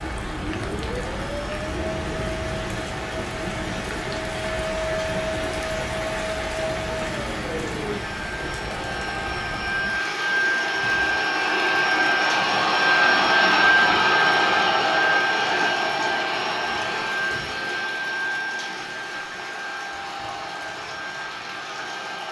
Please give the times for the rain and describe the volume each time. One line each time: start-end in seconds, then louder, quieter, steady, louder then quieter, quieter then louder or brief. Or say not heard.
0.0-22.2 quieter.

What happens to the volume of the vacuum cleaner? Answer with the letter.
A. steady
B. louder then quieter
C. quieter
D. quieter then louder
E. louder
B.